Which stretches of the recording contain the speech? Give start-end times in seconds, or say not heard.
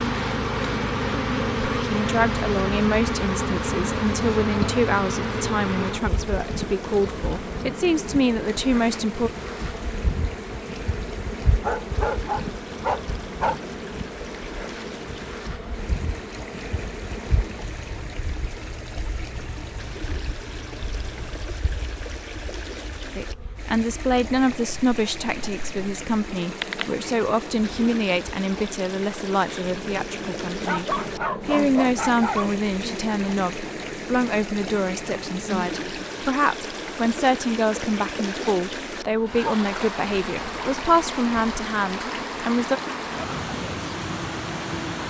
1.8-9.3, 23.1-42.8.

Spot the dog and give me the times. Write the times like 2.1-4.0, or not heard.
11.6-13.6, 30.6-32.5.